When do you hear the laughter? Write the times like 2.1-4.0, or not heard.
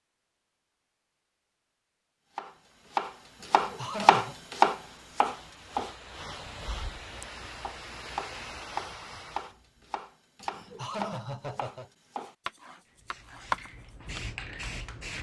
3.4-4.3, 10.4-11.9.